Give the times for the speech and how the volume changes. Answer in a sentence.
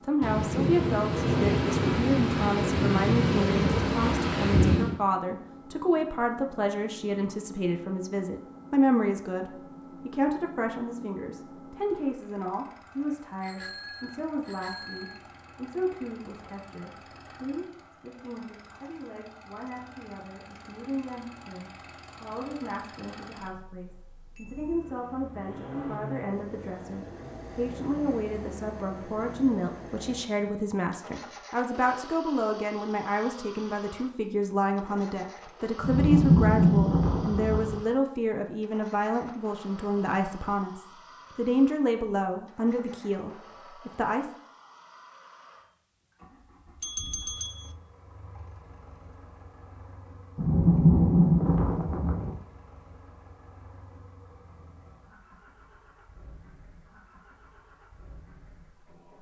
The speech can be heard from 0.0 to 44.3 s, getting quieter then louder.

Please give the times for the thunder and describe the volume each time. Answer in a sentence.
The thunder can be heard from 0.2 to 5.0 s, at a steady volume; briefly from 35.8 to 37.8 s; and briefly from 50.4 to 52.4 s.